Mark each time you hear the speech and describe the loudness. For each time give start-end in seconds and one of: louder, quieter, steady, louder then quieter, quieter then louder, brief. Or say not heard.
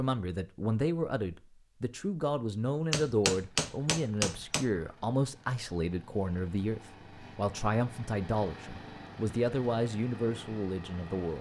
0.0-11.3 steady.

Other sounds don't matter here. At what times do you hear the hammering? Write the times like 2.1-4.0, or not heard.
2.9-4.7.